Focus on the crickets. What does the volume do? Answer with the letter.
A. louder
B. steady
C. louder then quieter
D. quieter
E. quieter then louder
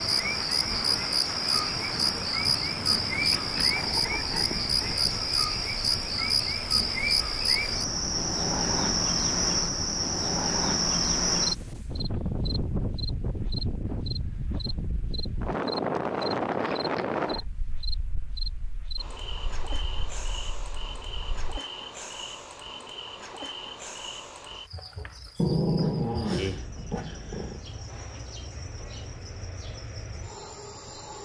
D.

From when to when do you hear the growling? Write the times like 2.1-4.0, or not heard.
3.1-5.0, 16.5-17.4, 25.4-27.6.